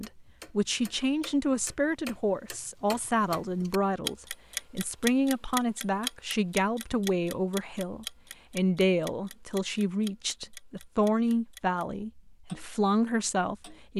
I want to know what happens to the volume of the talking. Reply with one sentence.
The volume of the talking stays about the same.